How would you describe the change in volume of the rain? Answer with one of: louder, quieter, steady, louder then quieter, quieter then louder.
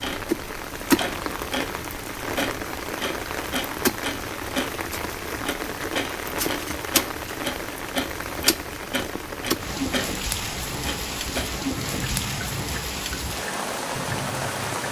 steady.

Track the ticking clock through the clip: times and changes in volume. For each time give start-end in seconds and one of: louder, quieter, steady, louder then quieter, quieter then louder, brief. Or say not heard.
0.0-14.8 steady.